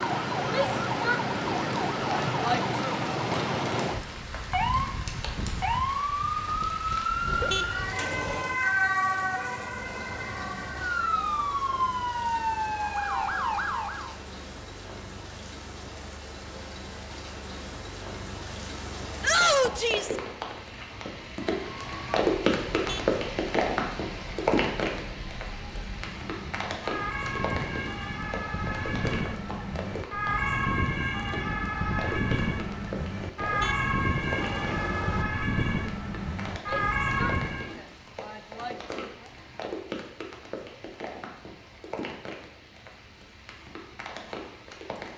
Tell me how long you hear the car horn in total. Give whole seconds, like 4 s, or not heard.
4 s.